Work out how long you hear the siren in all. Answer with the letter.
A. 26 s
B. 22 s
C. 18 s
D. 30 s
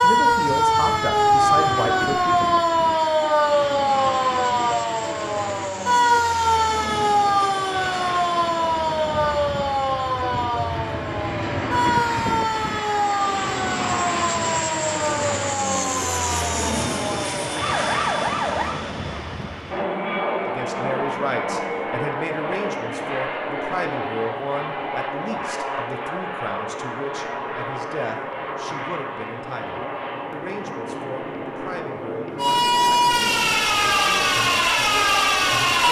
B.